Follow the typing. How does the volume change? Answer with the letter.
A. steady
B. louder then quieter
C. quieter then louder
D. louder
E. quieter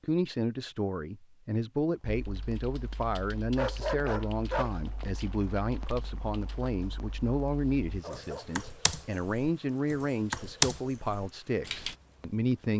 C.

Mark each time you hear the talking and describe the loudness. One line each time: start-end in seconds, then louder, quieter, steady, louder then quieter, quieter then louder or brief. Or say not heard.
0.0-12.7 steady.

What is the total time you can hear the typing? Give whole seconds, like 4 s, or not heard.
10 s.